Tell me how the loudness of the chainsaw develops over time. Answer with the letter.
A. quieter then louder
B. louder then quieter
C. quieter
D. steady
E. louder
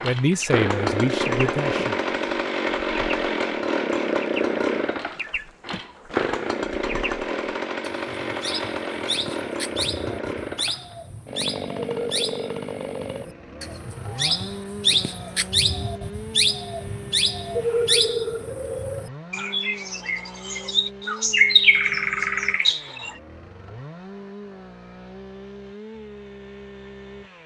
C.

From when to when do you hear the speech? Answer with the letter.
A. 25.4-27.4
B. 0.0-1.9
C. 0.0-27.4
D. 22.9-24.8
B.